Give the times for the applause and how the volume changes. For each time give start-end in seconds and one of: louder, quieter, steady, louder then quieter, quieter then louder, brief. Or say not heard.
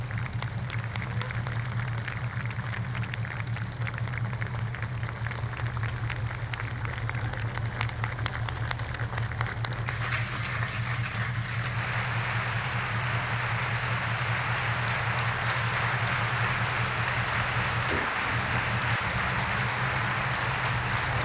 0.0-21.1 louder.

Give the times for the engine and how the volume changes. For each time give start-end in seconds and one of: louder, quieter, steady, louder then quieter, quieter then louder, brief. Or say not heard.
0.0-21.1 steady.